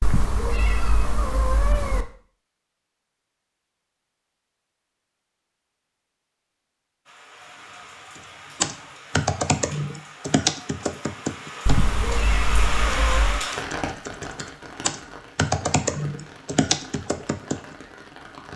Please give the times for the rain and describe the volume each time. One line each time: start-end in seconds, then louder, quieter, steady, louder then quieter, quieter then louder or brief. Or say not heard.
7.0-18.5 louder then quieter.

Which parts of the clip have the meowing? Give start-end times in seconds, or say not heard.
0.0-2.0, 11.7-13.4.